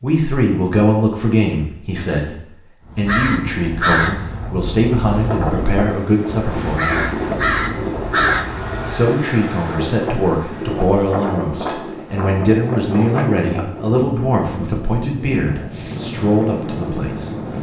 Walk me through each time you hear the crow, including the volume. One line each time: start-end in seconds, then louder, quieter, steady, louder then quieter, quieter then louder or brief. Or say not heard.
2.9-9.1 quieter then louder.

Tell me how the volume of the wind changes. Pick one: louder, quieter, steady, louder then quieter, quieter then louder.
steady.